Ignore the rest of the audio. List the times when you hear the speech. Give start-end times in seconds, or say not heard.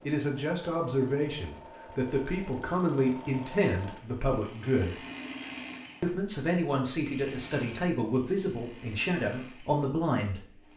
0.0-5.0, 6.0-10.4.